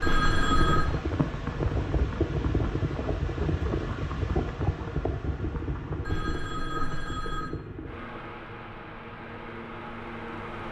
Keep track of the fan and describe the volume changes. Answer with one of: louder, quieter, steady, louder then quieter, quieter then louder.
quieter.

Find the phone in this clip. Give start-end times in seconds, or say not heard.
0.0-0.9, 6.0-7.5.